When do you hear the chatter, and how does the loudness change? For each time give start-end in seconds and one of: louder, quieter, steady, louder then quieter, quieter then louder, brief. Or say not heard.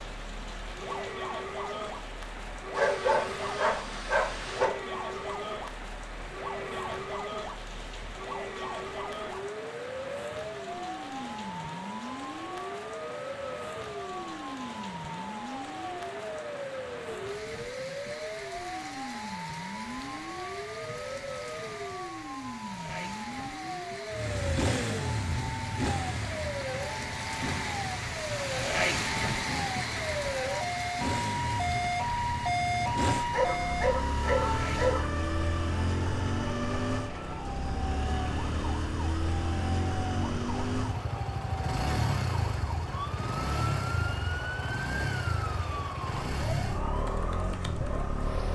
not heard.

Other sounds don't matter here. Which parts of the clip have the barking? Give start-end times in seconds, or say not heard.
2.8-4.7, 33.3-35.1.